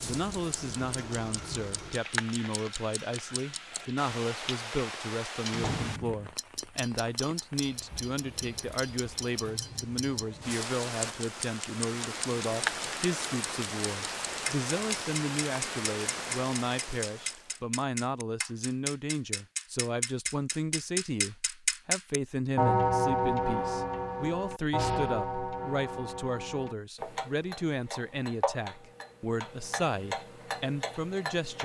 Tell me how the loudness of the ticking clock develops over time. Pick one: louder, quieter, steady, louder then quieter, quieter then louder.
louder then quieter.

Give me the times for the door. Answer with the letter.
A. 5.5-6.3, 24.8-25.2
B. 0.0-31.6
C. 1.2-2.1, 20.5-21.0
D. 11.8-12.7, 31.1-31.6
A.